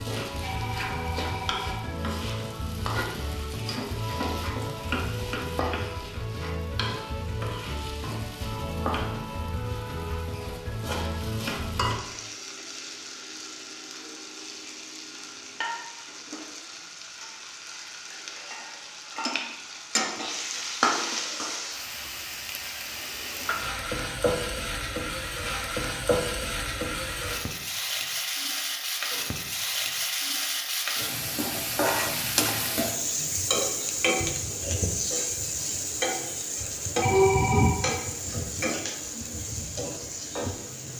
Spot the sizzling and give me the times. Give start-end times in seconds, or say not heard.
0.0-40.9.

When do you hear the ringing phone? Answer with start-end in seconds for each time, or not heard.
0.4-1.9, 37.0-37.8.